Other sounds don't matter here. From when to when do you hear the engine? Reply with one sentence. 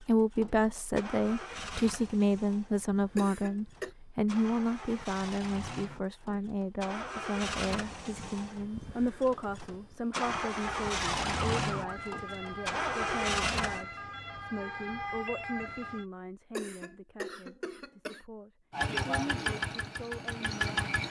The engine can be heard from 0.0 to 13.8 s and from 18.7 to 21.0 s.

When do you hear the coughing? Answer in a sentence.
The coughing can be heard from 3.1 to 3.9 s and from 16.5 to 18.2 s.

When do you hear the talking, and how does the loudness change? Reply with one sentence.
The talking can be heard from 0.0 to 20.8 s, getting quieter.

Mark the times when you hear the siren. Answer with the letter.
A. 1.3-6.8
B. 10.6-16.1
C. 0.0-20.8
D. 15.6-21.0
B.